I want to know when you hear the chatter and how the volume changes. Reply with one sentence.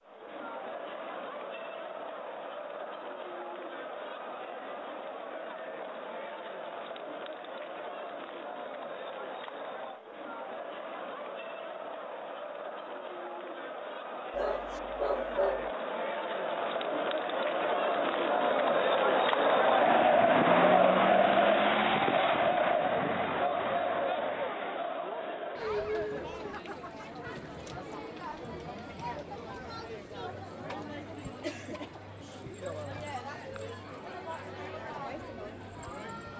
The chatter can be heard from 0.0 to 36.3 s, getting louder then quieter.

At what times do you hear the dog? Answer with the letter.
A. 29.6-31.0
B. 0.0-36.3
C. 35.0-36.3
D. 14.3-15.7
D.